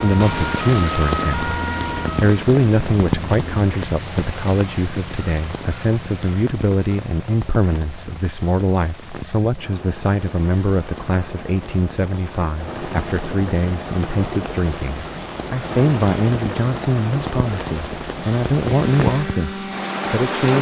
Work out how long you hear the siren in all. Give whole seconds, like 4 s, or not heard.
2 s.